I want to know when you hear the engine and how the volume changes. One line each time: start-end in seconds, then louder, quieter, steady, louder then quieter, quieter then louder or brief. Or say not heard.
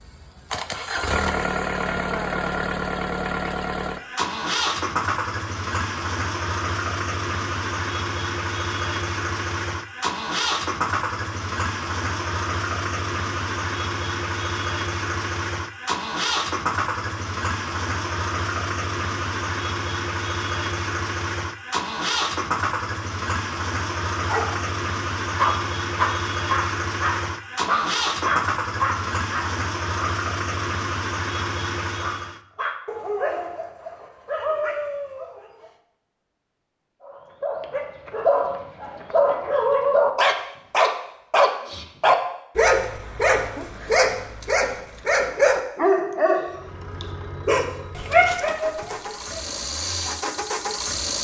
0.0-32.4 steady
46.5-51.2 louder.